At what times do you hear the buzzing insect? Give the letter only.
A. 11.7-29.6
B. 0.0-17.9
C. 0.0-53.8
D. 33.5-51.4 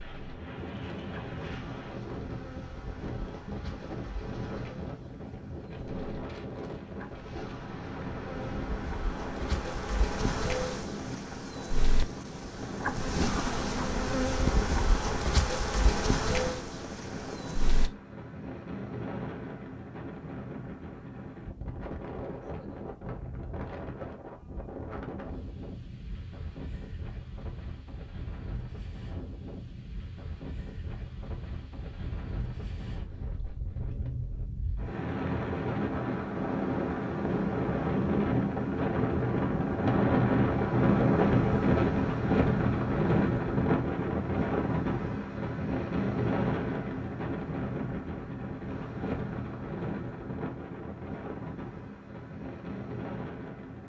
B.